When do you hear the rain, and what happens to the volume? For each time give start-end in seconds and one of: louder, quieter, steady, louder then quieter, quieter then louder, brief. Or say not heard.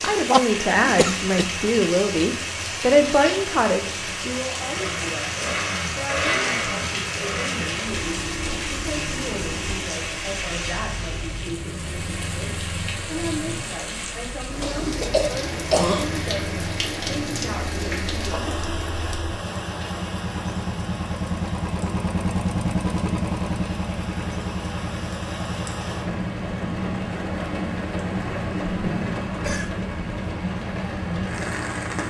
0.0-32.0 quieter then louder.